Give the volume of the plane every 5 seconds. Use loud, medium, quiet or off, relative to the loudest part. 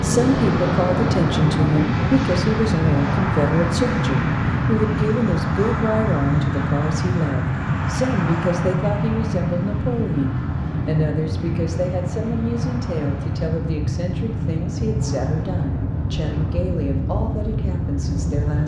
loud, loud, medium, medium.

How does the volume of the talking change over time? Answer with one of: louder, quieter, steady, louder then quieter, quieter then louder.
quieter.